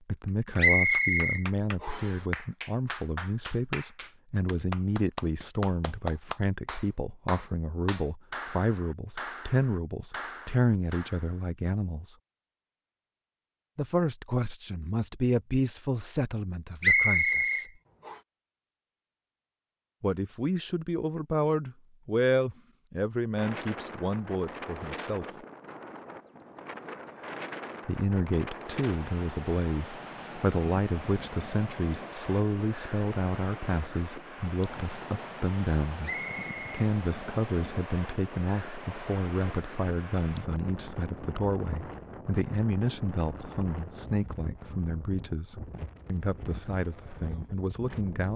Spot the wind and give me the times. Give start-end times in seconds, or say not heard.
23.4-48.3.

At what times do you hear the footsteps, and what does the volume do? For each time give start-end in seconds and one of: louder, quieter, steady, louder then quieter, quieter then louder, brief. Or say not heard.
not heard.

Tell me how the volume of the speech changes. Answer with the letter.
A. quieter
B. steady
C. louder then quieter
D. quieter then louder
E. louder
B.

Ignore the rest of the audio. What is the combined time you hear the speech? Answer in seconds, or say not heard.
42 s.